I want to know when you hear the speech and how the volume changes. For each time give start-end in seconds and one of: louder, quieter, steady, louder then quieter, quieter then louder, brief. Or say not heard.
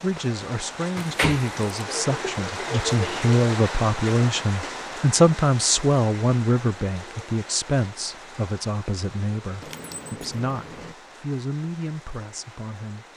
0.0-13.1 louder then quieter.